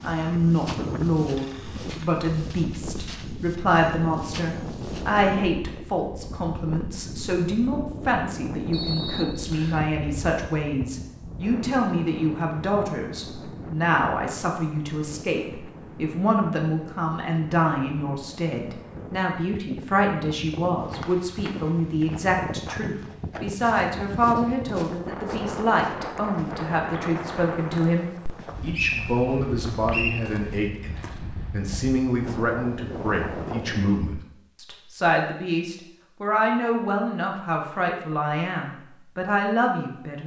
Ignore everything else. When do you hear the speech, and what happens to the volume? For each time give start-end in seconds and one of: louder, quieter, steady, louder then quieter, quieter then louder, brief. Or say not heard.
0.0-40.2 steady.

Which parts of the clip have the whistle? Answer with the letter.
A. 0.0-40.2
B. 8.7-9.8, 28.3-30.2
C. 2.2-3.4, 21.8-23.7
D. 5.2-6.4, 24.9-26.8
B.